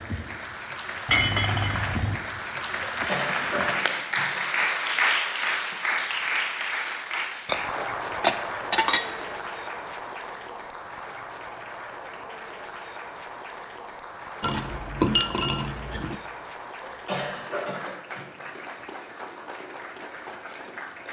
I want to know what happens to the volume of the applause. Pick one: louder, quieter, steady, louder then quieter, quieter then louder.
quieter.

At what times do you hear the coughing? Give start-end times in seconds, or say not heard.
2.8-4.4, 16.8-18.2.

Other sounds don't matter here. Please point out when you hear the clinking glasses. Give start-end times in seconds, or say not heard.
1.1-2.2, 7.5-9.3, 14.4-16.1.